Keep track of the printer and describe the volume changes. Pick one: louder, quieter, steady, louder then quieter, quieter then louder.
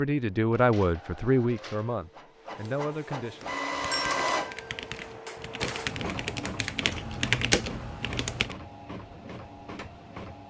louder then quieter.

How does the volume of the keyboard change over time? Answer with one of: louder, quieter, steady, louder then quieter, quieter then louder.
louder.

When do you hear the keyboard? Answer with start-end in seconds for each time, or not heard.
3.4-8.6.